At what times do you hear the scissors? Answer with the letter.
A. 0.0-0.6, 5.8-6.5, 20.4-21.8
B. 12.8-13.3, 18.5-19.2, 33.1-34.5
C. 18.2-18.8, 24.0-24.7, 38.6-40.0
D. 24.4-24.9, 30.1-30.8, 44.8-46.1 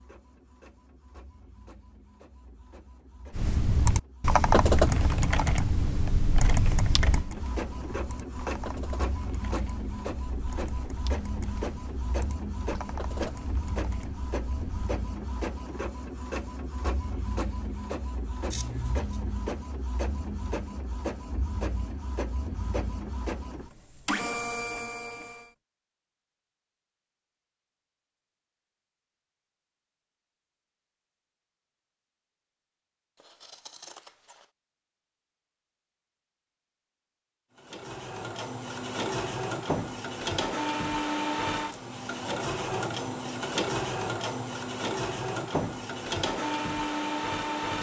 B.